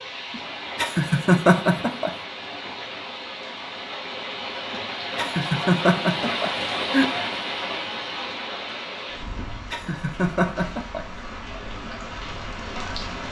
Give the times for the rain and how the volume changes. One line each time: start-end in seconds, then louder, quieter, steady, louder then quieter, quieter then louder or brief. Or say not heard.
0.0-13.2 louder then quieter.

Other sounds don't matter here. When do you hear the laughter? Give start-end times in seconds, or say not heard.
0.3-2.1, 4.7-7.1, 9.2-11.1.